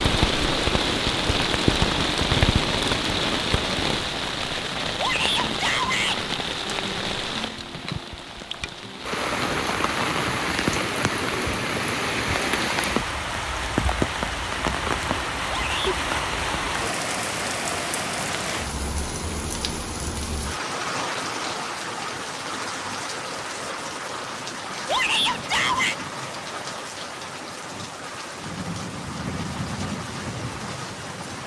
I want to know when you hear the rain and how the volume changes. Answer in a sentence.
You can hear the rain from 0.0 to 31.4 s, getting quieter.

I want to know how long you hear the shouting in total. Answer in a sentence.
The shouting can be heard for 3 seconds in total.